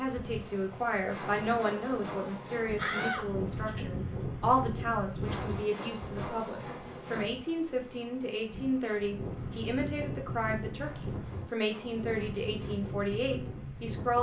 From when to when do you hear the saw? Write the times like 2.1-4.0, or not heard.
1.1-3.1, 5.2-7.2, 10.8-12.8.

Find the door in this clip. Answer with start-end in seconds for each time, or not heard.
2.8-3.5.